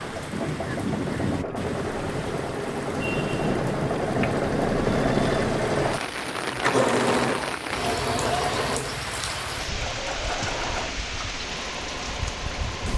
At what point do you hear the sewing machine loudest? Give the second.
5 s.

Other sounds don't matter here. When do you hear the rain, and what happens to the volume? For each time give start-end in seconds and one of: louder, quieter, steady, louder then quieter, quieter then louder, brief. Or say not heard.
0.0-12.9 steady.